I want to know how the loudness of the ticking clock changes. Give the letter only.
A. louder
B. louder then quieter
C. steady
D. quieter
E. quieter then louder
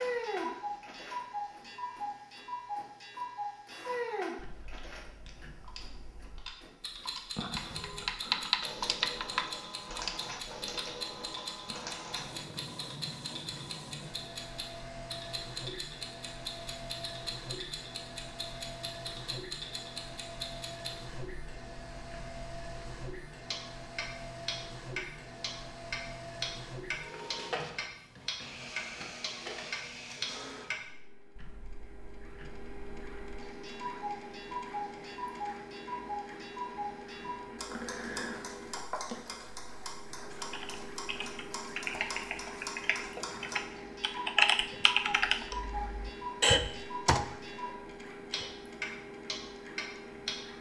C.